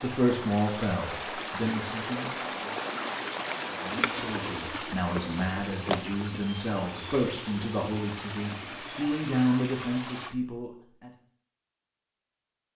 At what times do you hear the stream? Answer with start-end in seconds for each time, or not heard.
0.0-10.3.